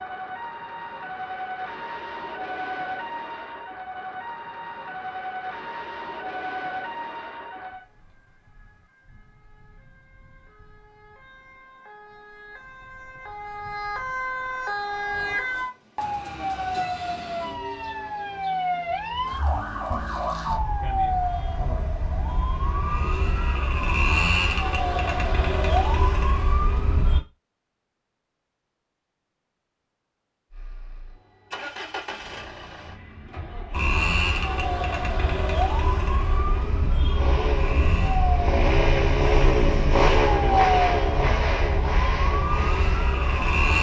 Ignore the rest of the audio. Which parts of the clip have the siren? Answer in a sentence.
The siren can be heard from 0.0 to 27.2 s and from 33.7 to 43.7 s.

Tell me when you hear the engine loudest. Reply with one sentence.
The loudest moment of the engine is at 40 seconds.